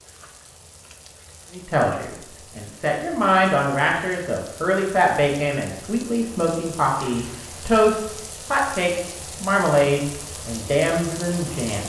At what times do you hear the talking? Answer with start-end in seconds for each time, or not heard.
1.5-11.8.